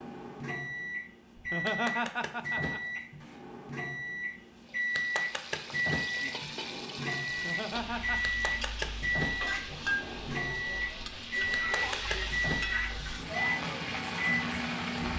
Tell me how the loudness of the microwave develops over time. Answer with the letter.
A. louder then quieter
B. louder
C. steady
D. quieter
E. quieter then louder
C.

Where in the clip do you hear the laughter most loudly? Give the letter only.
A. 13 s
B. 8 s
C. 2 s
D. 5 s
C.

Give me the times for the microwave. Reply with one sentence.
You can hear the microwave from 0.0 to 15.1 s.